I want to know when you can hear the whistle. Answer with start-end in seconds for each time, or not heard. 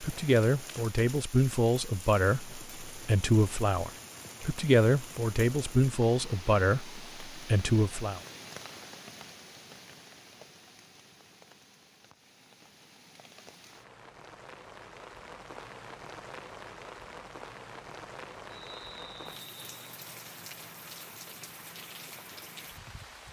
18.4-19.9.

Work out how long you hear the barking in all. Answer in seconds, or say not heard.
not heard.